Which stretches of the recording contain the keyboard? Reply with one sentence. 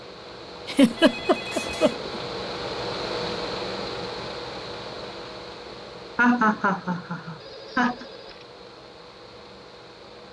You can't hear the keyboard here.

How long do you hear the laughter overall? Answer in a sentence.
You can hear the laughter for 3 seconds altogether.